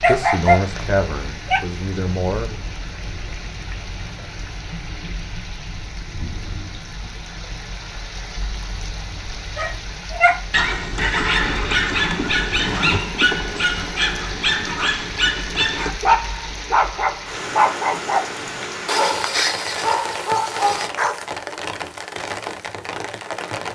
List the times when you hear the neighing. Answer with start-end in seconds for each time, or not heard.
10.9-13.0.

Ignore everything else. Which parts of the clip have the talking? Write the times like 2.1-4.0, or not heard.
0.1-2.5.